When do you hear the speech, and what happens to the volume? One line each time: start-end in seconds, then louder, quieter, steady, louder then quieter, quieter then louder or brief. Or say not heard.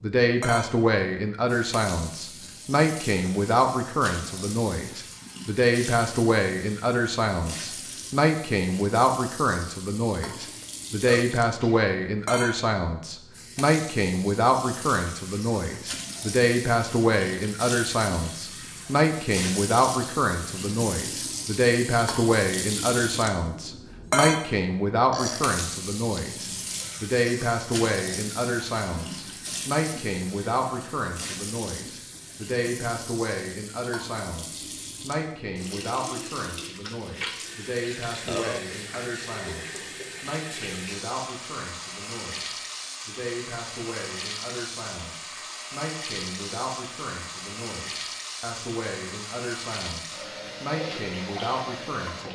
0.0-52.3 quieter.